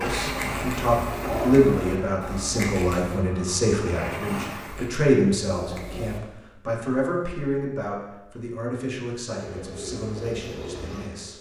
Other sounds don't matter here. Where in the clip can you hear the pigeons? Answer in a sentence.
The pigeons can be heard from 0.2 to 3.2 s, from 4.6 to 6.2 s and from 9.3 to 11.3 s.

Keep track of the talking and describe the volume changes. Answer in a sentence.
The loudness of the talking goes down.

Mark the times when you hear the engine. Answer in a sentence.
You can hear the engine from 0.0 to 4.9 s.